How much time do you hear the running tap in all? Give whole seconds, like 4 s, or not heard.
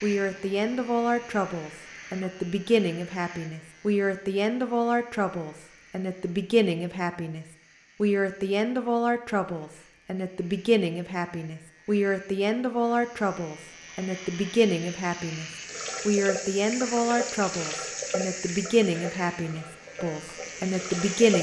6 s.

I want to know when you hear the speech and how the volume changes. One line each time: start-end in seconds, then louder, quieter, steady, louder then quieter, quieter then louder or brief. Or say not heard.
0.0-21.3 steady.